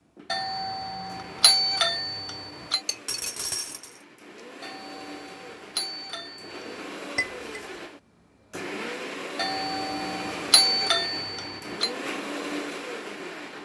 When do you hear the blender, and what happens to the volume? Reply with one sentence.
You can hear the blender from 0.0 to 13.6 s, getting louder.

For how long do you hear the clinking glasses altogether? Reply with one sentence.
The clinking glasses can be heard for 2 seconds in total.